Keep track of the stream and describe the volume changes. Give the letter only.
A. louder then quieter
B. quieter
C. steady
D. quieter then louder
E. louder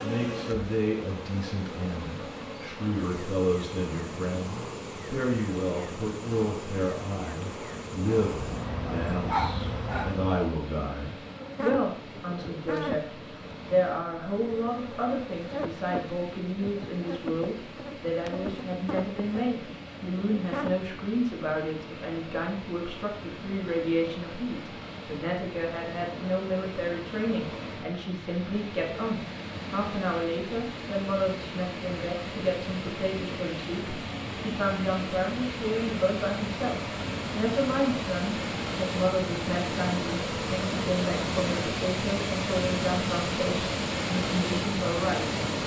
E.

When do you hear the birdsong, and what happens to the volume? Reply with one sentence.
The birdsong can't be heard in this clip.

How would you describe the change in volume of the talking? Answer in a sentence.
The loudness of the talking stays about the same.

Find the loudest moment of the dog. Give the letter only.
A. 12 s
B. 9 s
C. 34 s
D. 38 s
B.